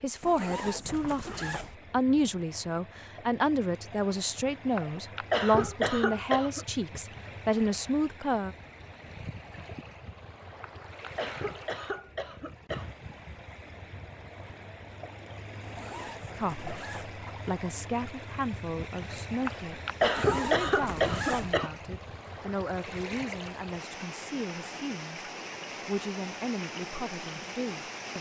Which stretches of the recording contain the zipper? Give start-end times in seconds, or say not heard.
0.2-1.8, 15.6-17.1, 20.0-21.6.